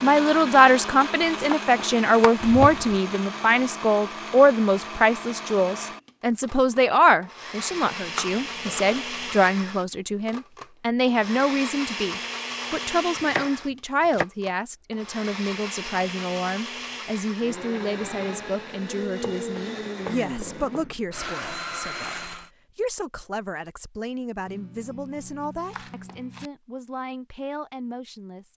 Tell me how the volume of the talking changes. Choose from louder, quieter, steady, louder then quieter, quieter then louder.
quieter.